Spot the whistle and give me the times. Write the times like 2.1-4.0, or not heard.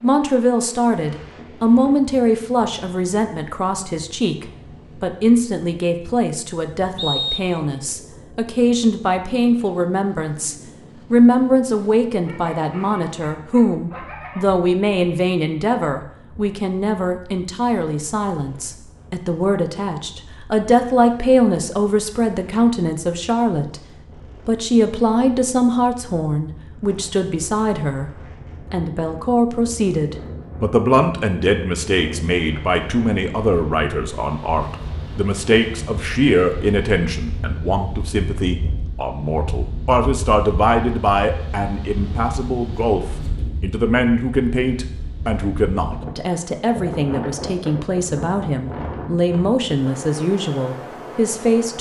7.0-7.6.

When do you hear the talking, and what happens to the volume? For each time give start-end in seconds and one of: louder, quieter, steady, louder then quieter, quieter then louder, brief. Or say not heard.
0.0-28.1 steady
28.7-51.7 steady.